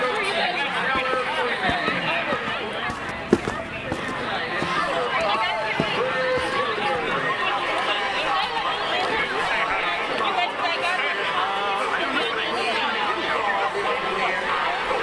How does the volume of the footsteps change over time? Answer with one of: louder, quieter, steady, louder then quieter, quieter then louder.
louder then quieter.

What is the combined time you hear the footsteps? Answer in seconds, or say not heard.
6 s.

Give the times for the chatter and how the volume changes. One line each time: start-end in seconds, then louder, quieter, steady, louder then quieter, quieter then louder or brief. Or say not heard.
0.0-14.9 steady.